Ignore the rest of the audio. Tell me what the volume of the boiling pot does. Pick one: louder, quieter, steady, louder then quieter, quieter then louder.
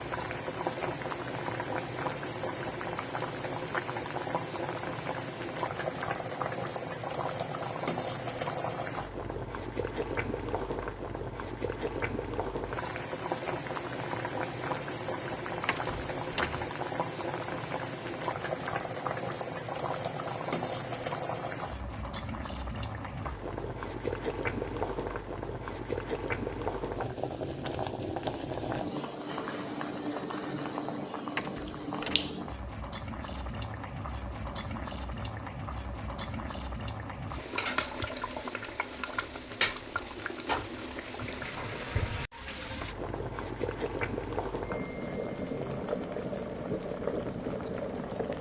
steady.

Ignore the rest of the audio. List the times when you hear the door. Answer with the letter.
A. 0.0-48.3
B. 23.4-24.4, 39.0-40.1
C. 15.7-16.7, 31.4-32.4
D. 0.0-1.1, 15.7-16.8
C.